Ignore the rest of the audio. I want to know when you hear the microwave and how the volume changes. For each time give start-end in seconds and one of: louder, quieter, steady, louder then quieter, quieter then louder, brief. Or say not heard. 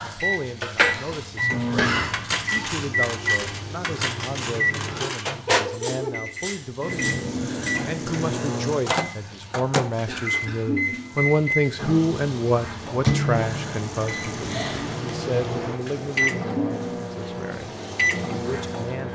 0.2-19.1 steady.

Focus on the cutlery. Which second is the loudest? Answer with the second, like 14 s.
1 s.